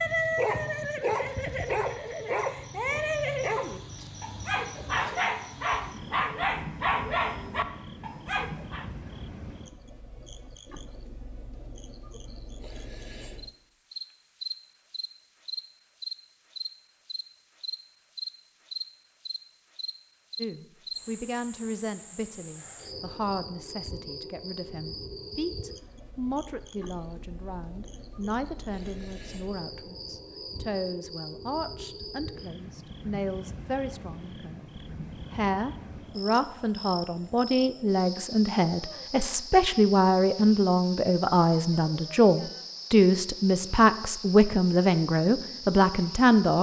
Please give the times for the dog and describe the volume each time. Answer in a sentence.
You can hear the dog from 0.0 to 8.8 s, at a steady volume.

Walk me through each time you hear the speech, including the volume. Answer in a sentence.
The speech can be heard from 20.4 to 46.5 s, getting louder.